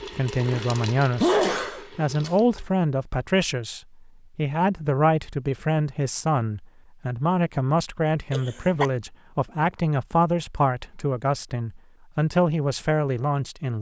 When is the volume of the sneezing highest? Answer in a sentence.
The loudest moment of the sneezing is at 1 second.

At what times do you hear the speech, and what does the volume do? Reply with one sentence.
You can hear the speech from 0.1 to 13.7 s, at a steady volume.